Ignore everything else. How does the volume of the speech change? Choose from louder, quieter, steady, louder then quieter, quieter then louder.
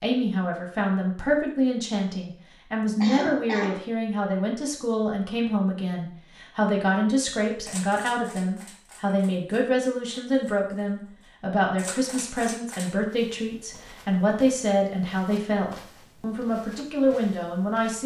steady.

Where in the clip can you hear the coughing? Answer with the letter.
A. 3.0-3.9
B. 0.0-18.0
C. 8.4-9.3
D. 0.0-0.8
A.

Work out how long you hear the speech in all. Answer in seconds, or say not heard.
18 s.